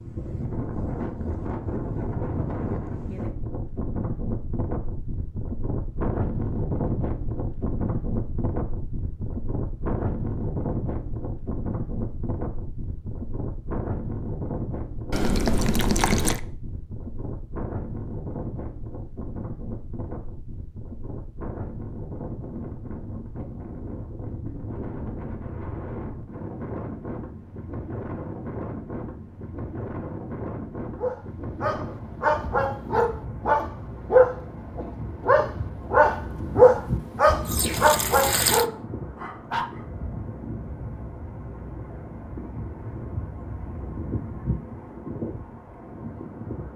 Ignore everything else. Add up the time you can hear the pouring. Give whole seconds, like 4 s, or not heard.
3 s.